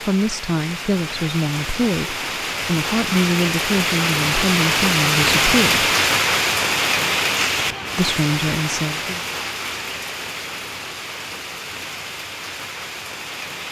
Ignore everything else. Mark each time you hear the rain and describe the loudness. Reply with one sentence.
The rain can be heard from 0.0 to 13.6 s, getting louder then quieter.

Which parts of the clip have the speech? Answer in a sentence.
You can hear the speech from 0.0 to 5.9 s and from 8.0 to 9.2 s.